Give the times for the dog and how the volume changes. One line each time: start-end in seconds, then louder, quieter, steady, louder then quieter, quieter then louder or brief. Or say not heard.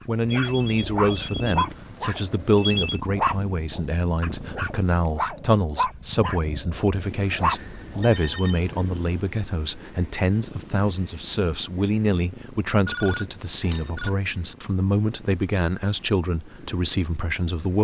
0.2-8.1 quieter then louder.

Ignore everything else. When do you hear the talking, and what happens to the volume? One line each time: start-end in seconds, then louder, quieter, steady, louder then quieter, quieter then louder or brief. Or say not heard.
0.1-17.7 steady.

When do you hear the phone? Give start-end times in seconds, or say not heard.
0.3-3.0, 8.0-8.8, 12.8-14.1.